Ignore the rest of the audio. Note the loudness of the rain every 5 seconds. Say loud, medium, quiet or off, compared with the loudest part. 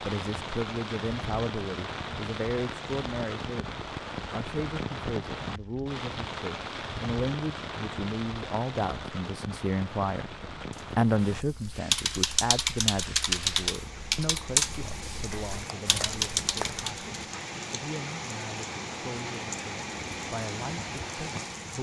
loud, loud, medium, loud, loud.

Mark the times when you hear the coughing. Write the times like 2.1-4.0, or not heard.
not heard.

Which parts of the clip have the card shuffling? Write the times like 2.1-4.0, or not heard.
15.3-16.9.